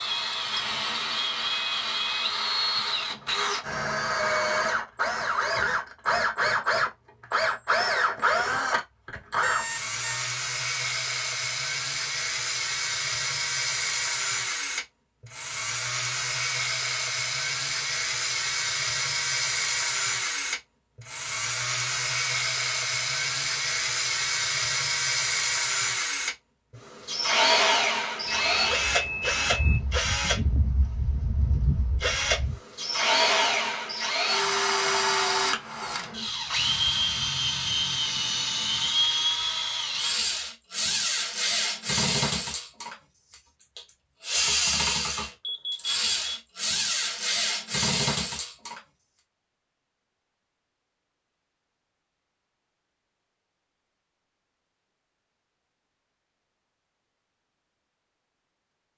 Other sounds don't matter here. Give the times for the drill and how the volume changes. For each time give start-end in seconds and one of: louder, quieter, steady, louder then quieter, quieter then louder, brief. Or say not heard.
0.0-48.8 steady.